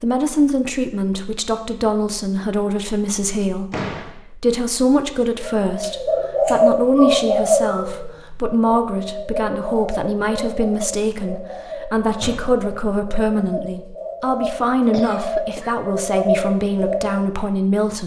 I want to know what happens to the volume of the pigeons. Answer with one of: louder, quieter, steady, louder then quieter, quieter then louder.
quieter then louder.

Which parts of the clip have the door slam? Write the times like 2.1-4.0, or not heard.
3.7-4.2, 12.2-12.9.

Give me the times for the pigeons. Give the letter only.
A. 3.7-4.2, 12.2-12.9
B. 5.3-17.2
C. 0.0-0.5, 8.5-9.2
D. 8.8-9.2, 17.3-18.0
B.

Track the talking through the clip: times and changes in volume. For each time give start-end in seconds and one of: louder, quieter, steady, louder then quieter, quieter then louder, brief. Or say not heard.
0.0-18.0 steady.